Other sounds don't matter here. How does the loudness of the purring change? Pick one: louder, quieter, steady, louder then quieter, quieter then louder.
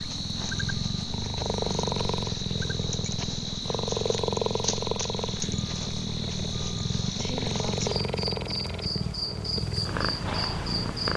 steady.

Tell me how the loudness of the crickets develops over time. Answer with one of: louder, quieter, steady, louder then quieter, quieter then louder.
steady.